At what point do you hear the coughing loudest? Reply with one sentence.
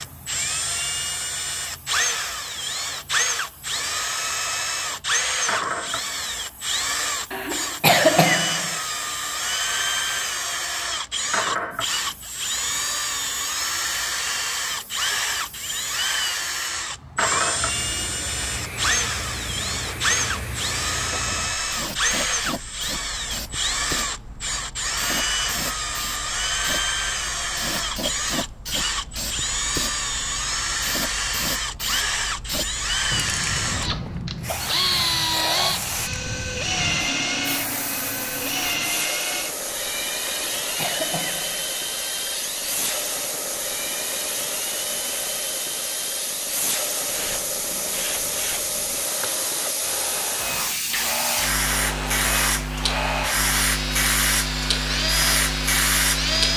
The loudest moment of the coughing is at 8 seconds.